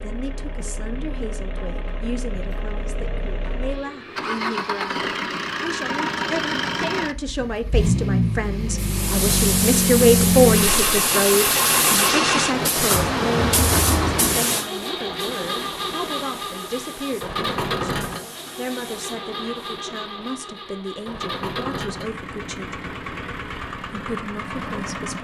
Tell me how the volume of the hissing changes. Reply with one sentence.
The loudness of the hissing goes down.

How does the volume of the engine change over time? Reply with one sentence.
The volume of the engine goes up, then down.